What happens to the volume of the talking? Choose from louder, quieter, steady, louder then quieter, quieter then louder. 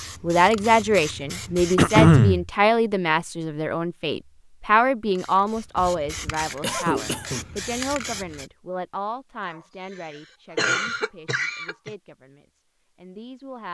quieter.